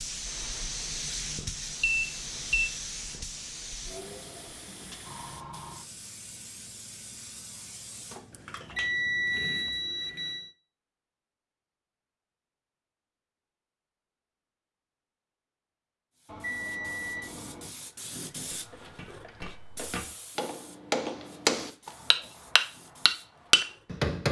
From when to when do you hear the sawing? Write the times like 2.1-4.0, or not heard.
not heard.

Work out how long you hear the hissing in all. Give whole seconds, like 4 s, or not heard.
18 s.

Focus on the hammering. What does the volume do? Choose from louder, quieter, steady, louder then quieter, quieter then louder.
louder.